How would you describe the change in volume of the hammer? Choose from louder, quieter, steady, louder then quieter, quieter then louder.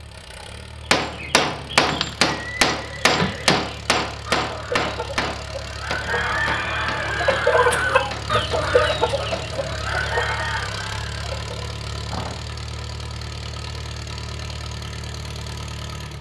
quieter.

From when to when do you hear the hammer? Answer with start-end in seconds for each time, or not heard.
0.9-9.5.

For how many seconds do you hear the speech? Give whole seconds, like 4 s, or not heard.
not heard.